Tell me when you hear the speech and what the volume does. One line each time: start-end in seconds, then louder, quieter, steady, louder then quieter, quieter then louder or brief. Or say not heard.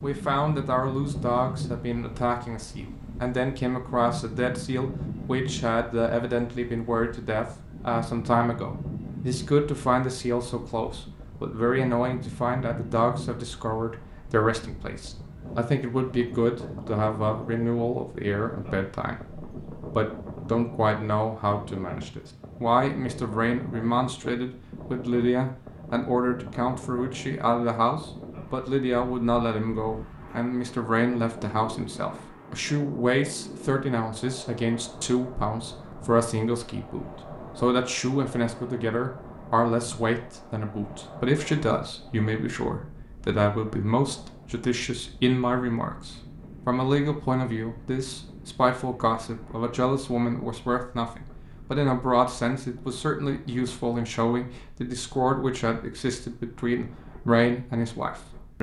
0.0-58.5 steady.